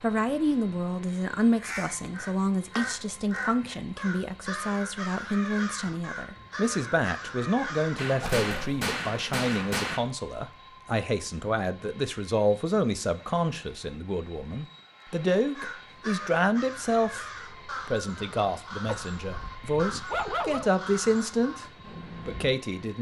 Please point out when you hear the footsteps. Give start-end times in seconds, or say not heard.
not heard.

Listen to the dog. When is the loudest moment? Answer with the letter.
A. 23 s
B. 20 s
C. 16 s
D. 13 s
B.